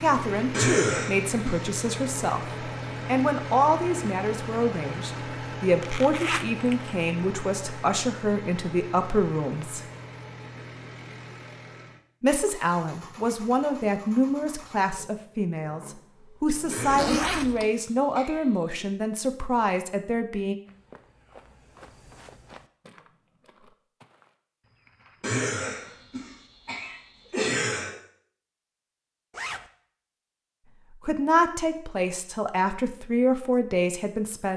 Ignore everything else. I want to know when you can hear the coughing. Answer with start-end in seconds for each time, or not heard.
0.5-1.7, 16.7-18.9, 25.2-27.9.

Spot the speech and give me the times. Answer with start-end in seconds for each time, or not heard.
0.0-9.8, 12.2-20.6, 31.1-34.5.